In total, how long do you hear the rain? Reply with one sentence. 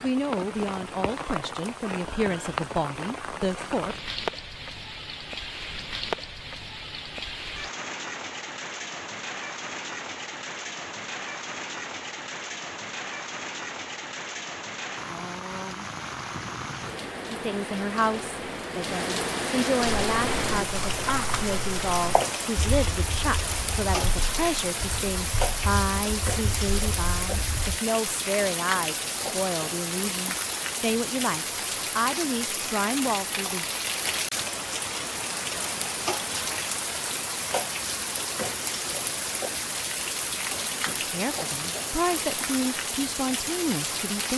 You can hear the rain for 44 seconds altogether.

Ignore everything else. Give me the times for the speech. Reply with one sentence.
You can hear the speech from 0.0 to 4.0 s, from 17.3 to 33.6 s and from 40.8 to 44.3 s.